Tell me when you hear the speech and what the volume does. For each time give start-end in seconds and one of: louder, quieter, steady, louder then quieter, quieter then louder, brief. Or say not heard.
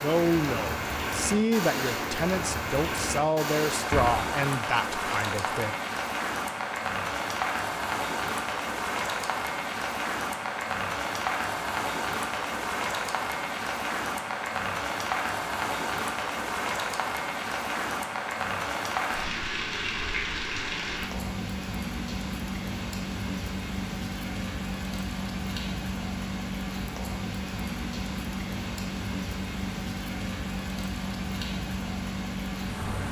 0.0-5.8 steady.